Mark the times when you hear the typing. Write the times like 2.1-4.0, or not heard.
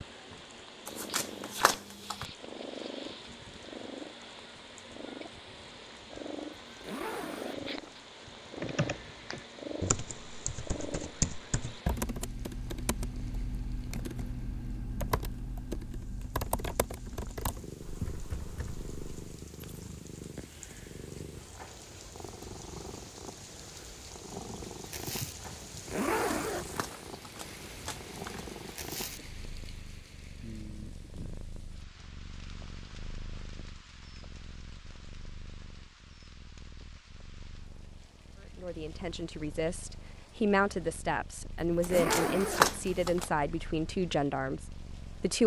8.6-19.4.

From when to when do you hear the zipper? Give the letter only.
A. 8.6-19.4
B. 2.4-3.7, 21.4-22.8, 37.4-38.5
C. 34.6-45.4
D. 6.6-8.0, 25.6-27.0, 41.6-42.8
D.